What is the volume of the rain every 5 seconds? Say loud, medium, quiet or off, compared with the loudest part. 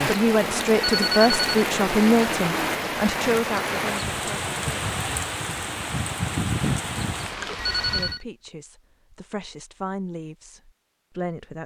loud, loud, off.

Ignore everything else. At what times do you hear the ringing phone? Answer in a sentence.
You can hear the ringing phone from 0.8 to 1.6 s and from 7.5 to 8.2 s.